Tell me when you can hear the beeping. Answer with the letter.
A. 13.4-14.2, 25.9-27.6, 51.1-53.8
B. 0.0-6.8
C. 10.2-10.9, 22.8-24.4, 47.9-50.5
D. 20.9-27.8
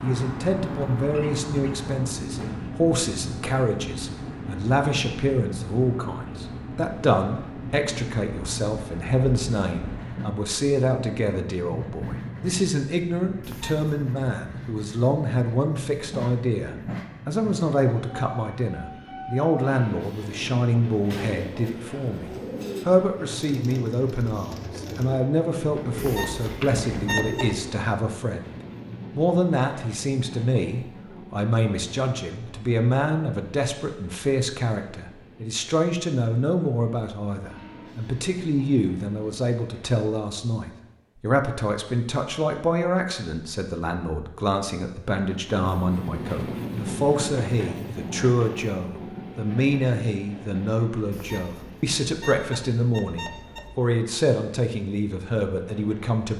A.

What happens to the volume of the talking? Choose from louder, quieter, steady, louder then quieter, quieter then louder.
steady.